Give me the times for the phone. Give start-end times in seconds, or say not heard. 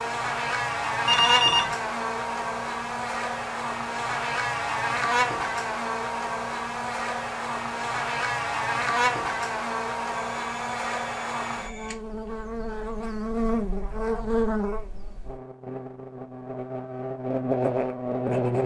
1.1-1.8, 10.3-11.9.